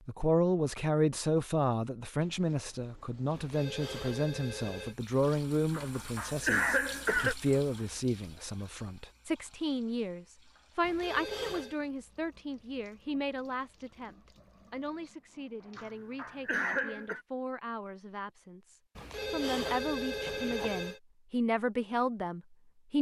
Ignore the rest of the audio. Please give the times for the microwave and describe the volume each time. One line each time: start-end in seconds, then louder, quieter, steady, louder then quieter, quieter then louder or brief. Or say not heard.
not heard.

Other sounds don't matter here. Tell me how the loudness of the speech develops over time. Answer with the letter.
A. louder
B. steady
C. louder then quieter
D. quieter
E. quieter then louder
E.